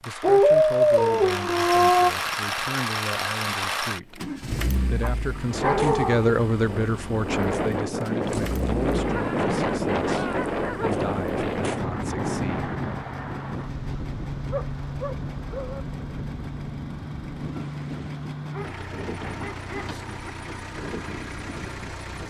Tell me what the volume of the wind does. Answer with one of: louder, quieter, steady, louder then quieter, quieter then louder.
quieter.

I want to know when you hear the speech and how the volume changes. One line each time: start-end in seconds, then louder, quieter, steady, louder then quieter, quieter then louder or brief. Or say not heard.
0.0-12.7 louder then quieter.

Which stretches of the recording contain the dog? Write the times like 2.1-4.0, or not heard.
0.2-2.1, 5.0-6.3, 9.1-11.0, 14.4-15.8, 18.5-20.3.